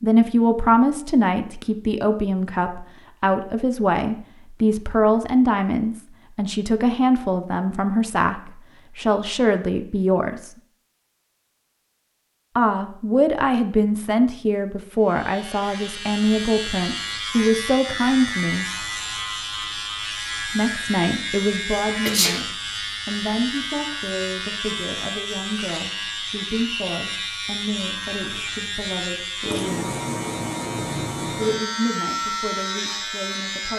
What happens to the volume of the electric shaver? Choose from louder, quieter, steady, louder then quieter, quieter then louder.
steady.